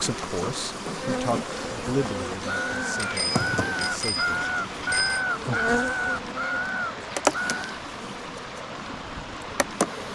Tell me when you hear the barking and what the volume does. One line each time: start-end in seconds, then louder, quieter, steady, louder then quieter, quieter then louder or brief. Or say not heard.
not heard.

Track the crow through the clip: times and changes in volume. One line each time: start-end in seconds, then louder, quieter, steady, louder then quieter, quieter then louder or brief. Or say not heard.
2.5-7.6 steady.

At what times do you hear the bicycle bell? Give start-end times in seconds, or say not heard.
3.0-5.2.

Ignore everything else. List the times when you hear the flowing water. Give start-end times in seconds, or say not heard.
0.0-10.1.